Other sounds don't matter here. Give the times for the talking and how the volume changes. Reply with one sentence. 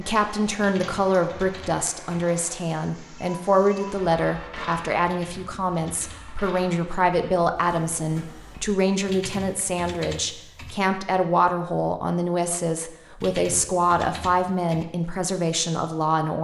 The talking can be heard from 0.0 to 16.3 s, at a steady volume.